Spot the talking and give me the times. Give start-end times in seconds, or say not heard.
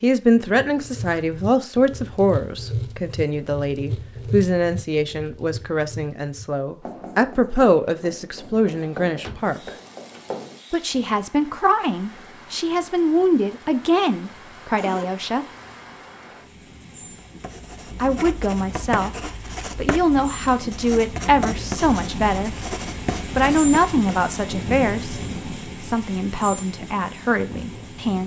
0.0-9.7, 10.7-15.4, 17.9-22.6, 23.3-25.1, 25.9-28.2.